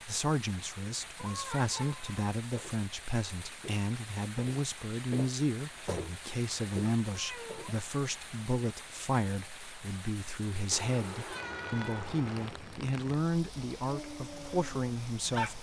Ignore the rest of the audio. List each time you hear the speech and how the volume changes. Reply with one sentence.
You can hear the speech from 0.1 to 15.5 s, at a steady volume.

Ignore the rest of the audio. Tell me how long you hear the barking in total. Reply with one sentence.
The barking can be heard for 2 seconds in total.